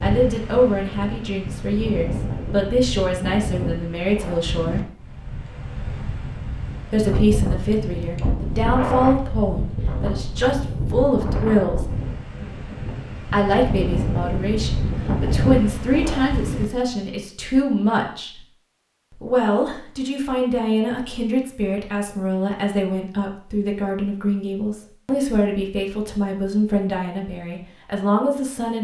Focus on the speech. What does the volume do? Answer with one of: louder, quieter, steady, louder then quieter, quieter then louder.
steady.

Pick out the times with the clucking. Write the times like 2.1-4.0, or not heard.
not heard.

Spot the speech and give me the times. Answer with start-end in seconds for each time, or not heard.
0.0-4.9, 6.9-11.8, 13.2-18.4, 19.1-28.7.